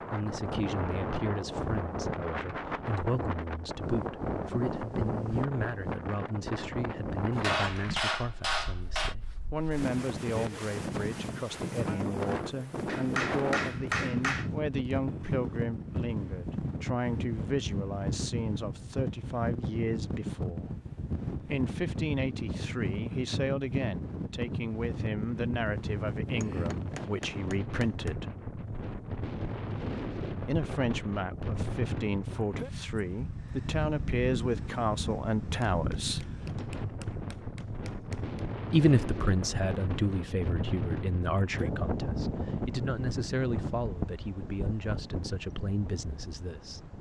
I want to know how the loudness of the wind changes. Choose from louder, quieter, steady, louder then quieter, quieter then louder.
steady.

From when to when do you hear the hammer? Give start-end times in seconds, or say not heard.
7.3-9.2, 12.8-14.5, 26.2-28.2, 35.7-38.4.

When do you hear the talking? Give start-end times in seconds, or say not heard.
0.1-20.7, 21.4-28.4, 30.4-36.2, 38.7-46.9.